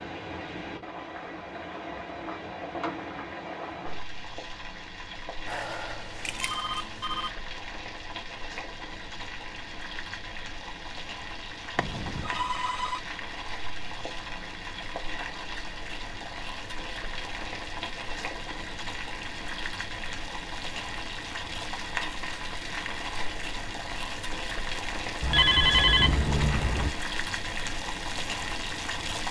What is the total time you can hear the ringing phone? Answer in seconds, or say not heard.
5 s.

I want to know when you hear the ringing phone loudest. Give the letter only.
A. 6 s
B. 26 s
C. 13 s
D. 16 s
B.